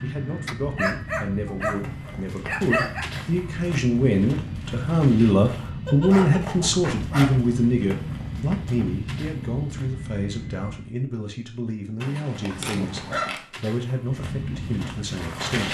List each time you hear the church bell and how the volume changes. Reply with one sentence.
You can't hear the church bell here.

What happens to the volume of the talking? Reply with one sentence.
The volume of the talking goes up, then down.